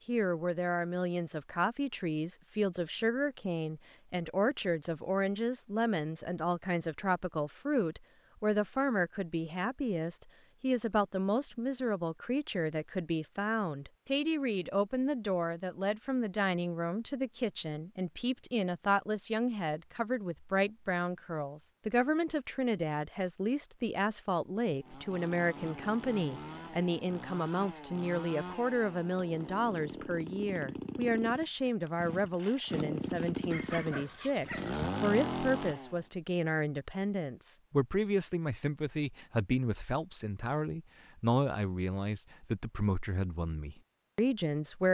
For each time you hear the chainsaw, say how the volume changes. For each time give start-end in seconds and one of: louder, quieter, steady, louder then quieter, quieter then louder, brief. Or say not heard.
24.8-36.0 louder.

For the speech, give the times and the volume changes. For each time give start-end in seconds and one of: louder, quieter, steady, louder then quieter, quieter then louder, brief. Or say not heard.
0.1-44.8 steady.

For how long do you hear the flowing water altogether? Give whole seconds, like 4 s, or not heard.
not heard.